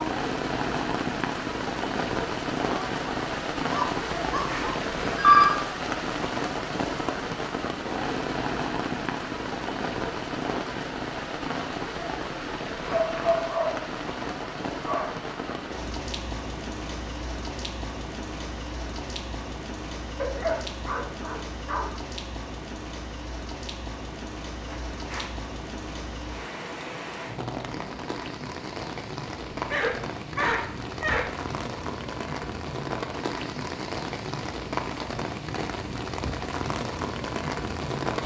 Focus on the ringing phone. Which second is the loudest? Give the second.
5 s.